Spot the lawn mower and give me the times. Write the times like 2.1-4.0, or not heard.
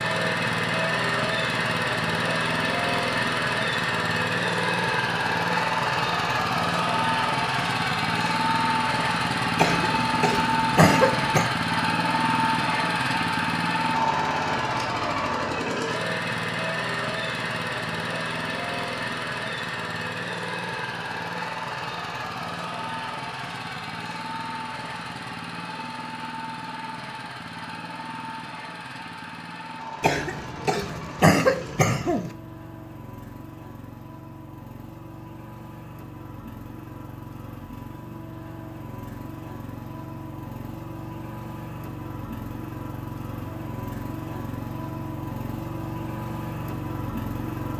0.0-47.7.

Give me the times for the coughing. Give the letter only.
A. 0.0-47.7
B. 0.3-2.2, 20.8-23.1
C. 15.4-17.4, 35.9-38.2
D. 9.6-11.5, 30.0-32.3
D.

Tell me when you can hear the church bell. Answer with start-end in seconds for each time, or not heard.
not heard.